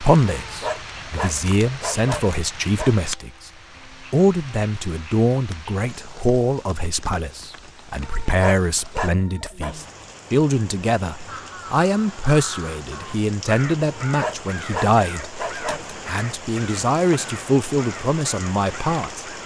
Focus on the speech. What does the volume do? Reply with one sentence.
The loudness of the speech stays about the same.